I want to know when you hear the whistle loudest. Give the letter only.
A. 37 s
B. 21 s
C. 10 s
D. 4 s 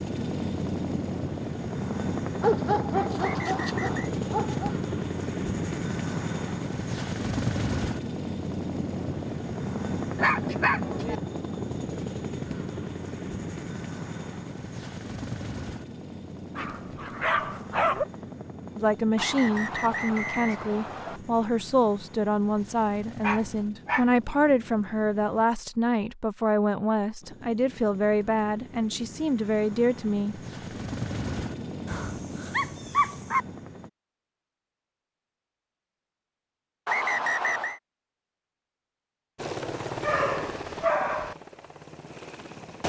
A.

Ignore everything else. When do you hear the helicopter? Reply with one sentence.
The helicopter can be heard from 0.0 to 25.4 s, from 27.2 to 33.9 s and from 39.4 to 42.8 s.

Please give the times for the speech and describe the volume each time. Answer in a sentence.
You can hear the speech from 18.8 to 30.4 s, at a steady volume.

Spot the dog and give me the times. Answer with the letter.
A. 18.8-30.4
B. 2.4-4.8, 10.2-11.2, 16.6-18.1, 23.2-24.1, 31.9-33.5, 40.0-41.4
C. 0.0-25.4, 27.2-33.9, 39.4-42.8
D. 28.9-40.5
B.